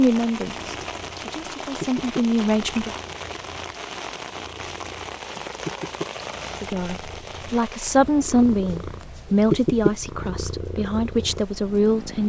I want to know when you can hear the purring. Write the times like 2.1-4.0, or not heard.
0.5-12.2.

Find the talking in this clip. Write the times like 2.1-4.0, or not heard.
0.0-2.9, 6.6-12.2.